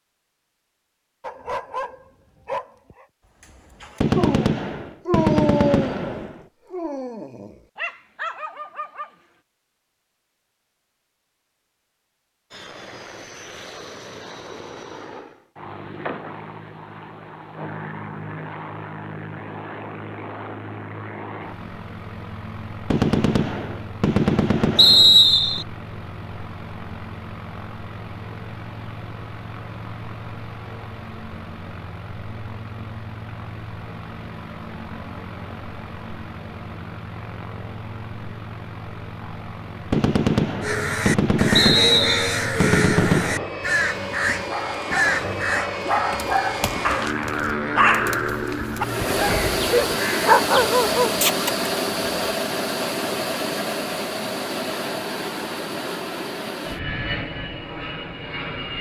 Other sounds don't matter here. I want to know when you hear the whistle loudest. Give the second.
25 s.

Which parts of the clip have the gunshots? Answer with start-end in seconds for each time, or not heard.
4.0-6.4, 22.9-25.6, 39.9-43.5.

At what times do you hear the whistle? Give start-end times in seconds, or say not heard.
24.8-25.6, 41.5-42.4.